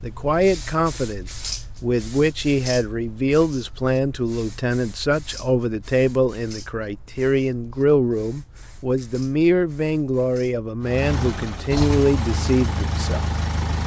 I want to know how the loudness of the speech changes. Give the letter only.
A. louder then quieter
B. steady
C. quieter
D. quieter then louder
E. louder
B.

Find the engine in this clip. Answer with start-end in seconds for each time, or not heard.
10.8-13.8.